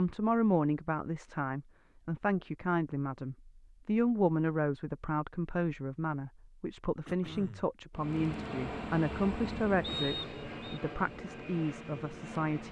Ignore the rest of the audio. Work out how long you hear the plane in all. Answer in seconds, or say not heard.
5 s.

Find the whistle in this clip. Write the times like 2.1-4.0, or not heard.
9.8-10.8.